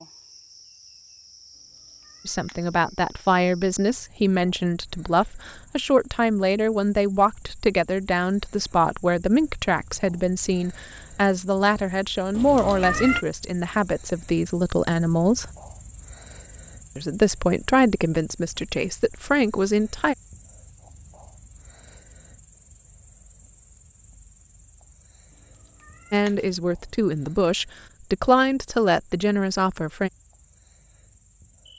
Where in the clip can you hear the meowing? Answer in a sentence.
The meowing can be heard from 2.0 to 2.5 s, from 12.3 to 13.2 s and from 25.8 to 26.3 s.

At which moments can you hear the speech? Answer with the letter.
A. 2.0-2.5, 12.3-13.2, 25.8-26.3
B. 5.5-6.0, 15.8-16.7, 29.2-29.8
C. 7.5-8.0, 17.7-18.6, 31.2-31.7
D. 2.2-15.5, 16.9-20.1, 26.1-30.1
D.